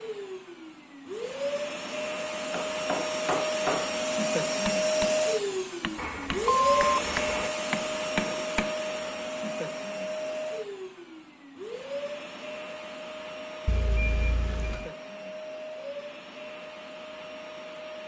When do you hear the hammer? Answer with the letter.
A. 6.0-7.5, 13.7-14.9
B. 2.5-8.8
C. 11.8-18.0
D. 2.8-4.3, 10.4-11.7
B.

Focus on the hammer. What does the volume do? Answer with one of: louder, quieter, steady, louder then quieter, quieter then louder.
quieter then louder.